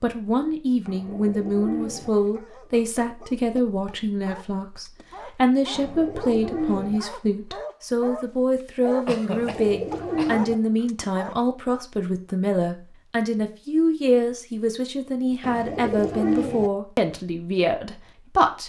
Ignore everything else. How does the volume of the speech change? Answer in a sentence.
The loudness of the speech stays about the same.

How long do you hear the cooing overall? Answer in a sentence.
You can hear the cooing for 5 seconds altogether.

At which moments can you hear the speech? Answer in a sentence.
The speech can be heard from 0.0 to 18.6 s.